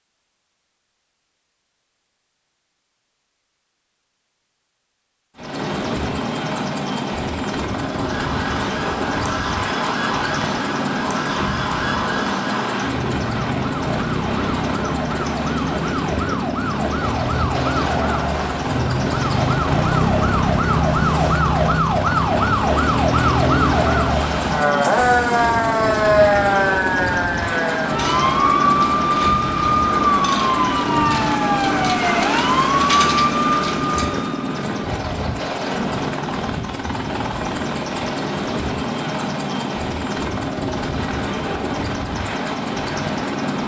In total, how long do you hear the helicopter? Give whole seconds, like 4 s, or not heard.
38 s.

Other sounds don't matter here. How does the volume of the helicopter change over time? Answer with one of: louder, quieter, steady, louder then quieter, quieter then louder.
steady.